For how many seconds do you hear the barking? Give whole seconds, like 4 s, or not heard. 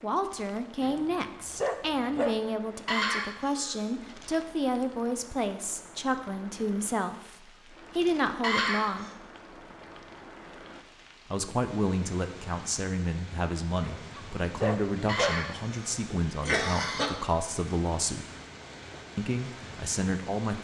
3 s.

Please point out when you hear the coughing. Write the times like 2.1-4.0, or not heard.
2.9-3.9, 8.4-9.1, 15.1-17.1.